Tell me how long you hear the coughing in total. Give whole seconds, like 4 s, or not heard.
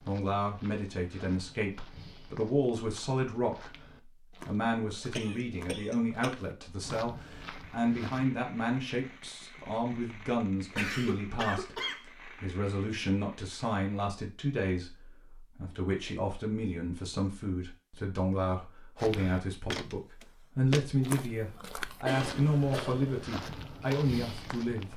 4 s.